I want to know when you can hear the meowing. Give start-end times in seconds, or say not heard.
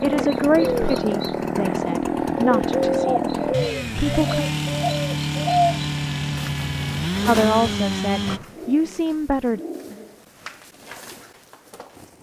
not heard.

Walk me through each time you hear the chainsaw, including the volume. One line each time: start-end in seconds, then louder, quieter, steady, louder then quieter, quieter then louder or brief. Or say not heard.
0.0-8.4 steady.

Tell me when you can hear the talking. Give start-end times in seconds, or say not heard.
0.0-3.4, 4.0-4.5, 7.2-9.6.